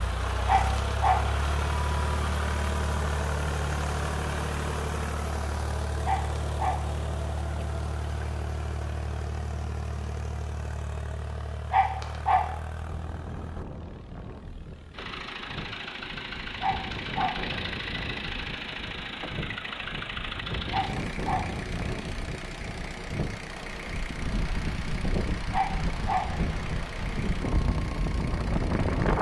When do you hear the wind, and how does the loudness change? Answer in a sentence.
You can hear the wind from 12.8 to 29.1 s, getting louder.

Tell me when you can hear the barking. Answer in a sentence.
The barking can be heard from 0.5 to 1.2 s, from 6.0 to 6.8 s, from 11.7 to 12.4 s, from 16.6 to 17.4 s, from 20.7 to 21.4 s and from 25.5 to 26.2 s.